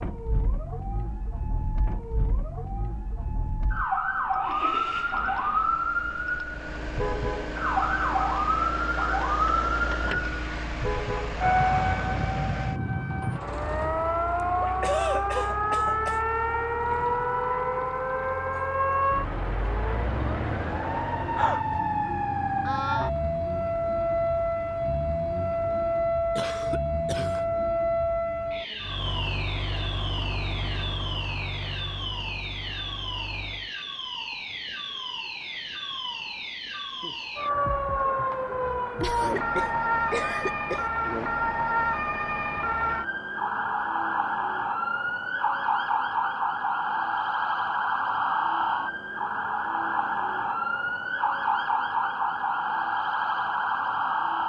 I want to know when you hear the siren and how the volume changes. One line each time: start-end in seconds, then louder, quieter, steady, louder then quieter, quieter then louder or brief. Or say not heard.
0.0-54.4 steady.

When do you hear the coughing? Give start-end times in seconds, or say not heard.
14.8-16.2, 26.4-27.4, 39.0-40.9.